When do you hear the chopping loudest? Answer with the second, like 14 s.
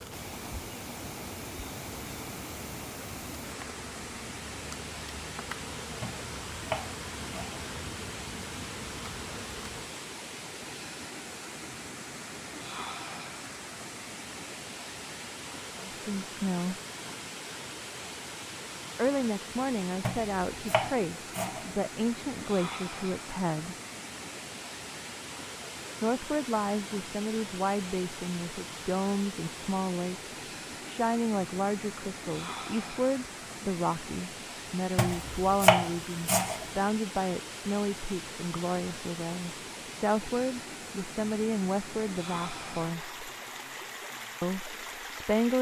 36 s.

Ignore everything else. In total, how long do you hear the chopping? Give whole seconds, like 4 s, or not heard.
5 s.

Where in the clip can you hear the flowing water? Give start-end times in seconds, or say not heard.
0.0-45.5.